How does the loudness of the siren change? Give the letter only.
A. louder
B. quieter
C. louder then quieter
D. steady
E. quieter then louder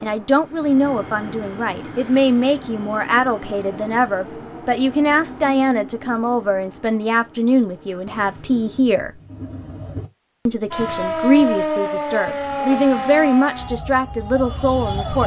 B.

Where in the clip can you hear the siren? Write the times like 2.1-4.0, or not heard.
10.7-15.2.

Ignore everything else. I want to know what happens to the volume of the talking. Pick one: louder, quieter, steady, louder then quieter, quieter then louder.
steady.